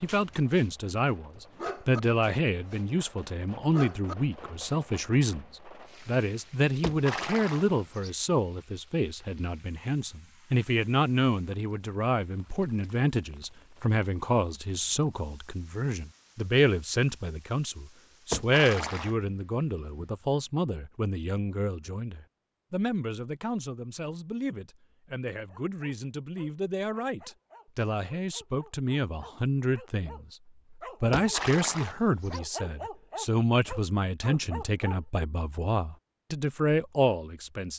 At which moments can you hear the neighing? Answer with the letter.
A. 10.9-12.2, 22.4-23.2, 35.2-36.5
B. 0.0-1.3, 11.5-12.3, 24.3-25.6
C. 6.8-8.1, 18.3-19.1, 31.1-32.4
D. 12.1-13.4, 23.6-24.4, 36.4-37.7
C.